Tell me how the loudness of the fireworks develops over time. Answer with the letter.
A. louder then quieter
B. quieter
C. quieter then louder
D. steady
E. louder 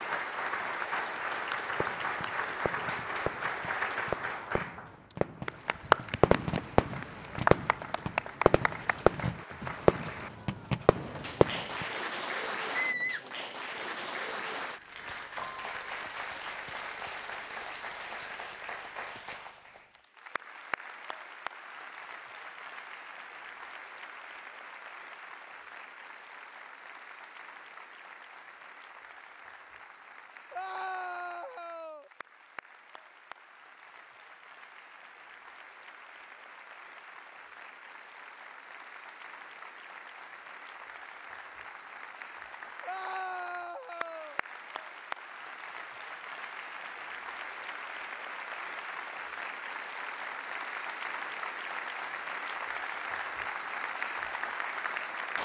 E.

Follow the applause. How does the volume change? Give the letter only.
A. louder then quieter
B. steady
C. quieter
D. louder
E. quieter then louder
E.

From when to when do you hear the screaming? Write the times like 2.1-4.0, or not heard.
12.8-13.2, 30.5-32.1, 42.8-44.4.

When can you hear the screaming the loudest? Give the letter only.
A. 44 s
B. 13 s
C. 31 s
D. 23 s
B.